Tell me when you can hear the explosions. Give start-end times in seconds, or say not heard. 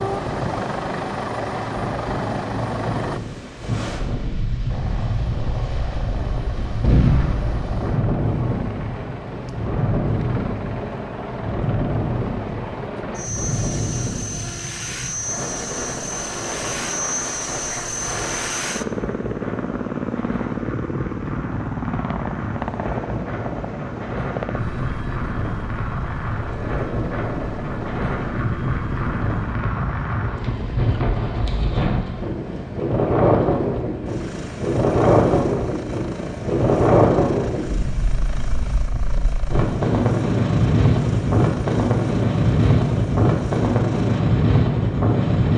6.8-7.7.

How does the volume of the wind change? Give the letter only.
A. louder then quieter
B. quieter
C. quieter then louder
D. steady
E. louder
E.